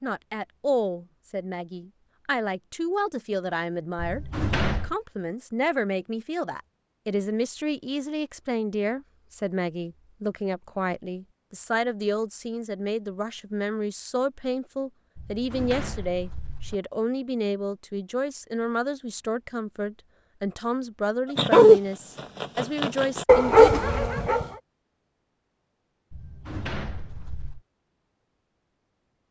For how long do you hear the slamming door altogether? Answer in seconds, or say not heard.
4 s.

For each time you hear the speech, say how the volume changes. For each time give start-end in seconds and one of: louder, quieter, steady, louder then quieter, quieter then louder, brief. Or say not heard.
0.0-23.8 steady.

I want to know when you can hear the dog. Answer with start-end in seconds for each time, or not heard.
21.4-21.8, 22.4-24.4.